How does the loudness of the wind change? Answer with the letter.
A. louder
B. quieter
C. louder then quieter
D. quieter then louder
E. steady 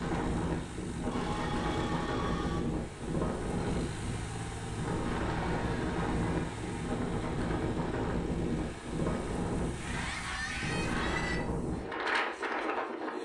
E.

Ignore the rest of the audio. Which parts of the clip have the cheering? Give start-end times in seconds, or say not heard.
1.1-2.6, 5.3-7.0, 9.8-11.4.